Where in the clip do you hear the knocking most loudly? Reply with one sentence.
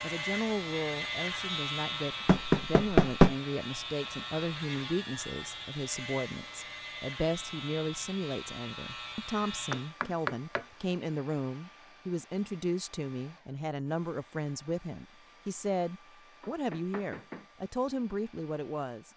The loudest moment of the knocking is at 3 seconds.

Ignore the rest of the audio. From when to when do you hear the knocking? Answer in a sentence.
The knocking can be heard from 2.2 to 3.4 s, from 9.7 to 10.7 s and from 16.4 to 17.4 s.